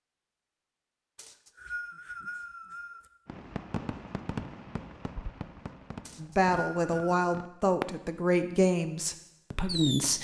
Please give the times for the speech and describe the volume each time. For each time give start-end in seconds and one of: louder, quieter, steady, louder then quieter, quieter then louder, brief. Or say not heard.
6.2-10.2 quieter.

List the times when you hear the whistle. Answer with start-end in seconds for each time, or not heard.
1.1-3.0, 6.0-7.2.